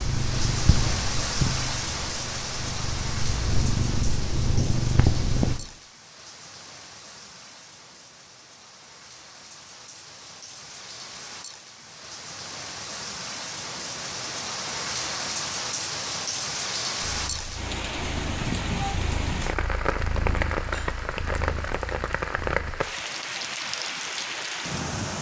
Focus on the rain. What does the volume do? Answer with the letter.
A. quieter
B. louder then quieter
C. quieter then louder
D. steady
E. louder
C.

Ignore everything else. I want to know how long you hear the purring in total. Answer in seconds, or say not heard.
11 s.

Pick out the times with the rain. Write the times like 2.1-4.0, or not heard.
0.0-25.1.